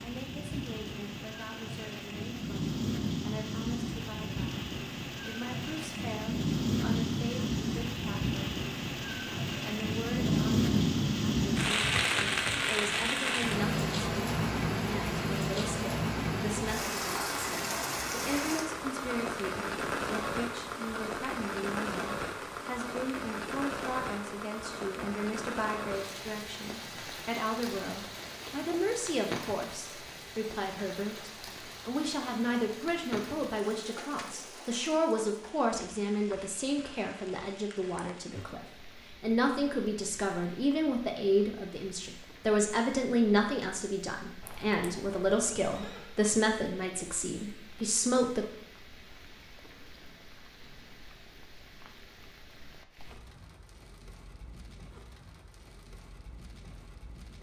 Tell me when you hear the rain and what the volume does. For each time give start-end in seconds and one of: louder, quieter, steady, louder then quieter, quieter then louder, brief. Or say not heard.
0.0-57.3 quieter.